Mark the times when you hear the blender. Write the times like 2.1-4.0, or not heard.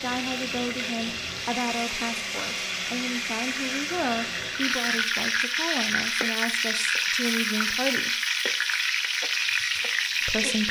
0.0-5.1.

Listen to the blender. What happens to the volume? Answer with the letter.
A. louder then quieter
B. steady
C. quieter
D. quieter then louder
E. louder
B.